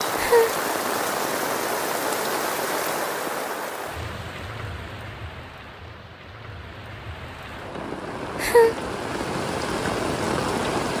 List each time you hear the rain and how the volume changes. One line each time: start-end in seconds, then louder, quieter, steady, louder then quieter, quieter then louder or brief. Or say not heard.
0.0-10.9 quieter then louder.